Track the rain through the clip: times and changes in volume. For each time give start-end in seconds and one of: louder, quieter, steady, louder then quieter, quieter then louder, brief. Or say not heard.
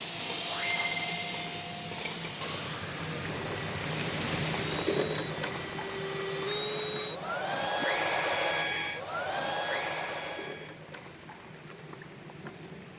0.0-12.9 louder then quieter.